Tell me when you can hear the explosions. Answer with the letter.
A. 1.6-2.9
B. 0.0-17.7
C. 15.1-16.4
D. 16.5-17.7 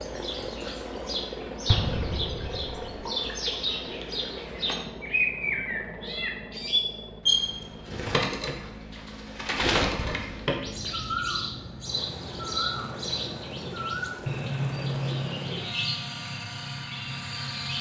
A.